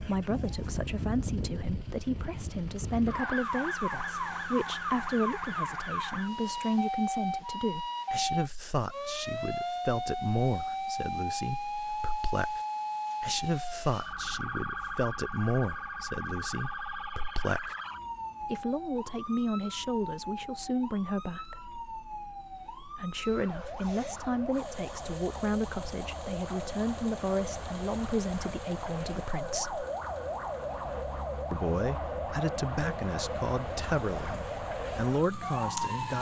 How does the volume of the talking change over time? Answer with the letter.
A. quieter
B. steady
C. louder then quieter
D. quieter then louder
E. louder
B.